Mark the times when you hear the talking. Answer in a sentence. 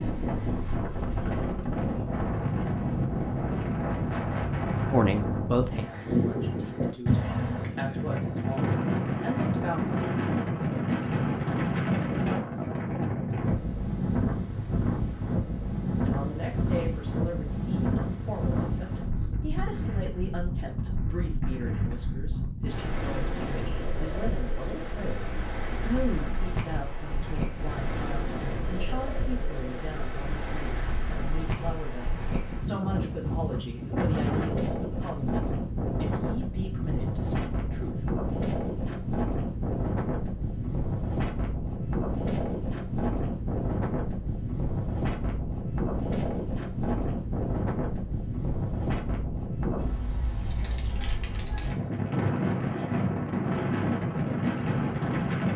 You can hear the talking from 4.9 to 10.0 s and from 16.0 to 38.2 s.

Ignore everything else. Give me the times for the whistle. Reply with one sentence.
The whistle can't be heard in this clip.